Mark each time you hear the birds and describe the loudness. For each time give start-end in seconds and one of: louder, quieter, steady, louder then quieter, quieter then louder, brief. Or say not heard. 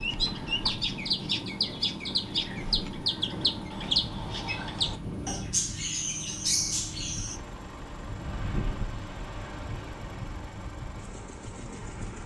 0.0-7.4 steady.